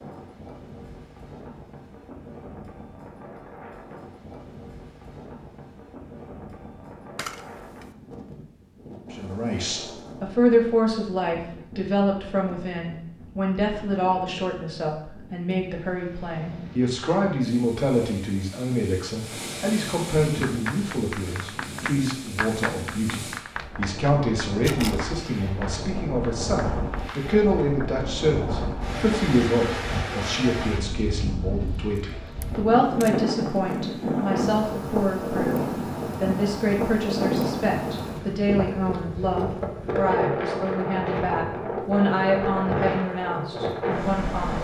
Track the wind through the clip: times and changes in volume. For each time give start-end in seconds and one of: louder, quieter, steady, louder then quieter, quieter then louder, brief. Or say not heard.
0.0-44.5 louder.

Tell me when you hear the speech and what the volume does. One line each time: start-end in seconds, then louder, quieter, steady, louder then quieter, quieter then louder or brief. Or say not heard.
9.1-44.5 steady.